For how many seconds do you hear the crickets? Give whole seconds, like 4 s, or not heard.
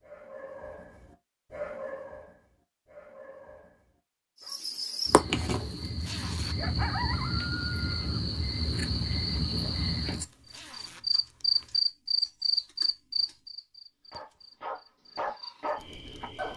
12 s.